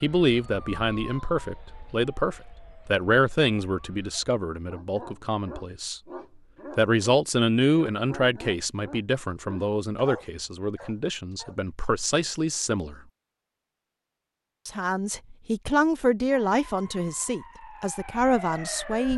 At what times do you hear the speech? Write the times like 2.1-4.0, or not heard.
0.0-6.0, 6.8-13.0, 14.7-19.1.